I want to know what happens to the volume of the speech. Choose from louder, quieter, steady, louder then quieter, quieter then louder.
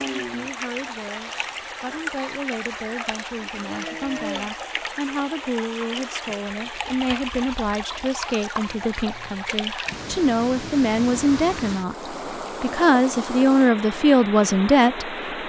louder.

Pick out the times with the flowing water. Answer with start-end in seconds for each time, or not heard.
0.0-15.4.